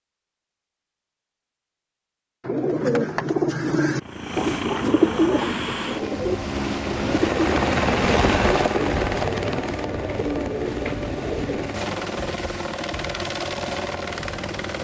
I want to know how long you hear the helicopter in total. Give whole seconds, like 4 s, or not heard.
11 s.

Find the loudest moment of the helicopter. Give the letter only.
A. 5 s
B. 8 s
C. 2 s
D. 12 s
B.